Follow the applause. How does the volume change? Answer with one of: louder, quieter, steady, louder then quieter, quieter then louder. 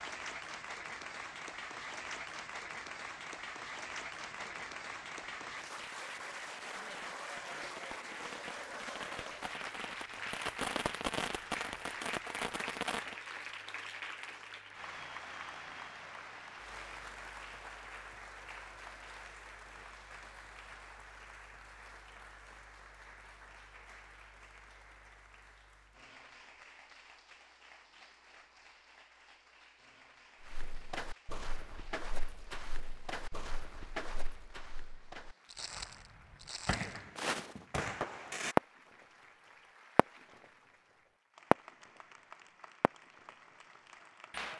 quieter.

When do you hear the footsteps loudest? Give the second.
37 s.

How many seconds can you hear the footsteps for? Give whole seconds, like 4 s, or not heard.
7 s.